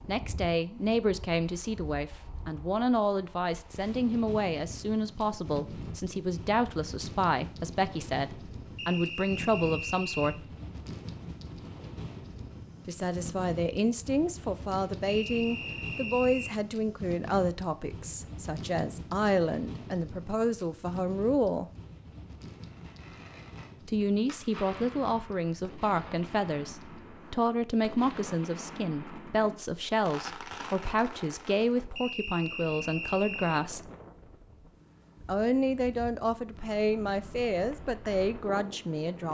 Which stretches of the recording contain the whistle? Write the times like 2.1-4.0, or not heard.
8.8-10.4, 15.1-16.5, 31.9-33.6.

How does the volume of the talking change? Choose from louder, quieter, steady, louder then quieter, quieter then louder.
steady.